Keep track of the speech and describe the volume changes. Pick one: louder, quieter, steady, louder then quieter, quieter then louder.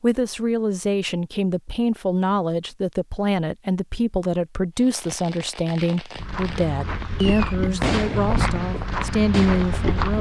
steady.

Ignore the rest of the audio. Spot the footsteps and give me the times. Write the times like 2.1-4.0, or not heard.
6.2-10.1.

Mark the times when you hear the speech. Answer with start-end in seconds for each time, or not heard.
0.0-10.1.